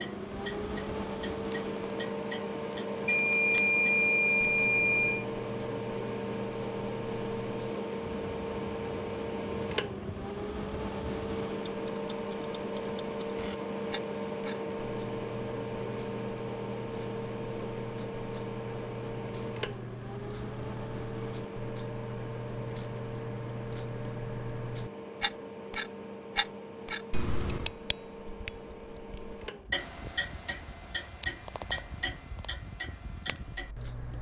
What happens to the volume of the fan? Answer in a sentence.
The loudness of the fan goes down.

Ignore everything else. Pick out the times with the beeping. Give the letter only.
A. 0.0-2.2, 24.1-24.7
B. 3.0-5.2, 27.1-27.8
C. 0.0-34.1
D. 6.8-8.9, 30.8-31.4
B.